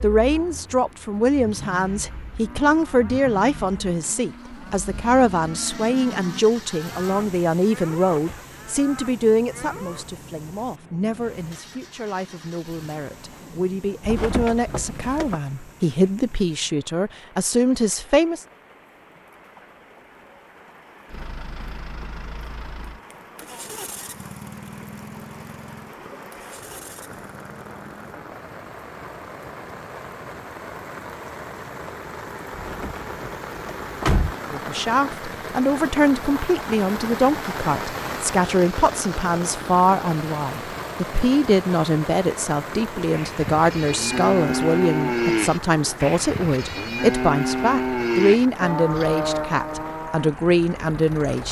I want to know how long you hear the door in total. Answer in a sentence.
The door can be heard for 3 seconds in total.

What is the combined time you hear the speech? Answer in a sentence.
The speech can be heard for 35 seconds in total.